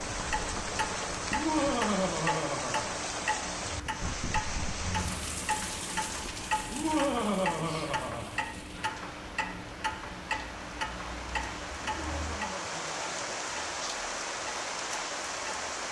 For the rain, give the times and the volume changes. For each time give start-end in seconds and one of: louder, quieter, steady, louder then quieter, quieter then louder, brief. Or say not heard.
0.0-15.8 quieter then louder.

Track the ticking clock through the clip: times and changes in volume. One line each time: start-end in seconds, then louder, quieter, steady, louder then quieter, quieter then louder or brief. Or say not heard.
0.0-15.8 quieter.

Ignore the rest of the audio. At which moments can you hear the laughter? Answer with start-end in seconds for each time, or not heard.
1.3-2.9, 6.7-8.3, 11.9-13.2.